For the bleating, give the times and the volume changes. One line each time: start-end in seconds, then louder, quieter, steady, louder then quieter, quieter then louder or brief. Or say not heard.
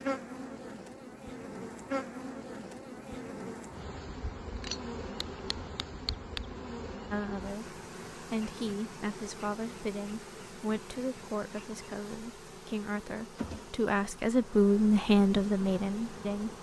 not heard.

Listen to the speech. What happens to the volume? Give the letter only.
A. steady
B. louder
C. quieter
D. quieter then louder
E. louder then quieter
B.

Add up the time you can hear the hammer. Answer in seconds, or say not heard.
2 s.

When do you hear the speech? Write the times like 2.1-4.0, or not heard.
7.1-16.5.